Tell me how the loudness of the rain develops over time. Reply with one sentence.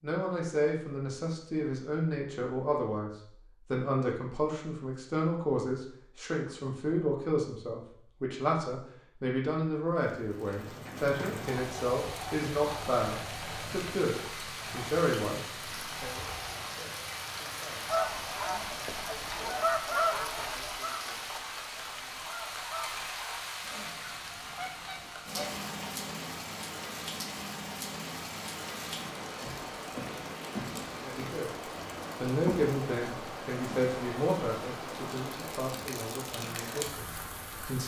The volume of the rain stays about the same.